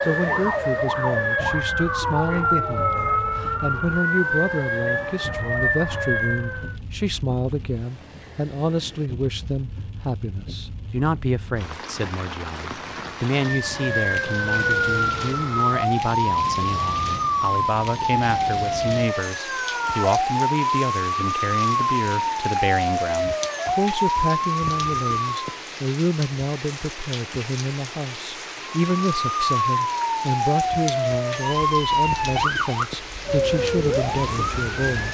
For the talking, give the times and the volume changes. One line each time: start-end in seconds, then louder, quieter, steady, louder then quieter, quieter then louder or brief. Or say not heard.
0.0-35.0 steady.